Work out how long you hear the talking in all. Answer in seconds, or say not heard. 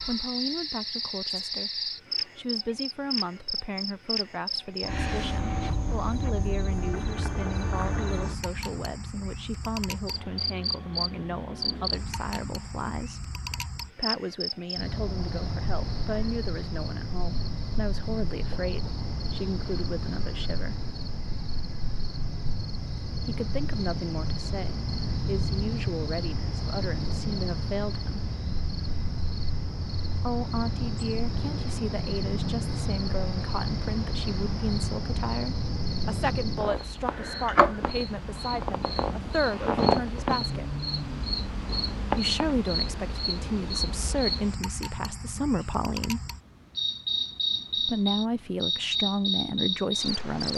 43 s.